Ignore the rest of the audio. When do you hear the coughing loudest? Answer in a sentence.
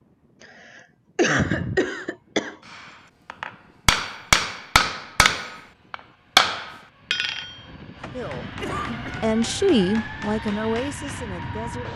The volume of the coughing peaks at 1 second.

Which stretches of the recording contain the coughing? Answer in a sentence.
The coughing can be heard from 0.4 to 2.5 s and from 8.6 to 9.2 s.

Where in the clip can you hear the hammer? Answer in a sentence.
The hammer can be heard from 2.7 to 11.5 s.